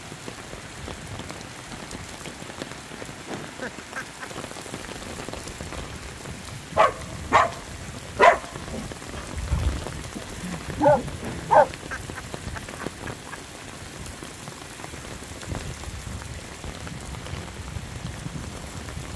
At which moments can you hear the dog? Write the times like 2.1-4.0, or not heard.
6.8-11.7.